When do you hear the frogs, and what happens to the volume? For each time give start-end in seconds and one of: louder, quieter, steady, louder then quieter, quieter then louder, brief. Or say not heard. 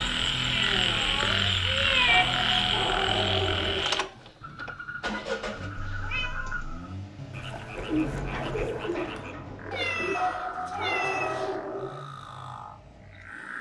0.0-13.5 quieter.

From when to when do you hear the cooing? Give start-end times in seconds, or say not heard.
7.8-10.2.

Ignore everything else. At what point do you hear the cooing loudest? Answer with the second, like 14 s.
8 s.